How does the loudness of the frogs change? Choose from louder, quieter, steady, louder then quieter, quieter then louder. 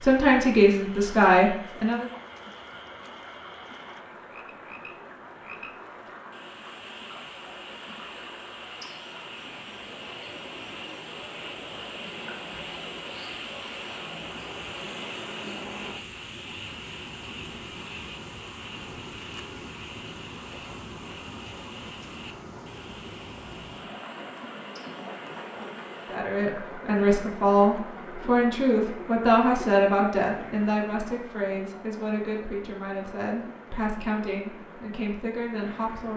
louder then quieter.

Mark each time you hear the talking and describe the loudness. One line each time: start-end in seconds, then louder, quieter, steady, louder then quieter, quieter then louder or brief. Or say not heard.
0.0-2.0 brief
26.1-36.1 quieter.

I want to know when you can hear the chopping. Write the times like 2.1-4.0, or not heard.
not heard.